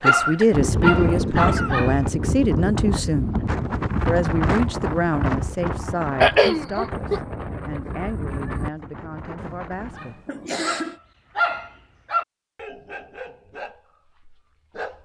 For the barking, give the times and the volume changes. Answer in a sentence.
The barking can be heard briefly from 0.0 to 2.0 s; and from 9.9 to 15.0 s, getting louder then quieter.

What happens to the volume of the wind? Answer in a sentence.
The volume of the wind goes down.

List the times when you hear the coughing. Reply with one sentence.
You can hear the coughing from 0.1 to 1.8 s, from 6.2 to 7.2 s and from 10.2 to 11.0 s.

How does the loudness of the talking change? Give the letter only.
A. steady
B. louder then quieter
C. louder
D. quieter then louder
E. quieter
E.